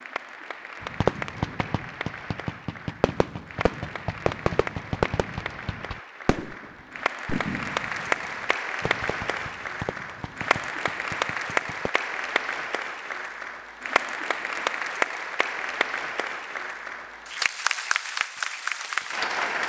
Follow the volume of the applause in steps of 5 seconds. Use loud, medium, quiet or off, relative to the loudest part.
medium, loud, loud, loud.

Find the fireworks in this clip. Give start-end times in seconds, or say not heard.
0.8-11.9.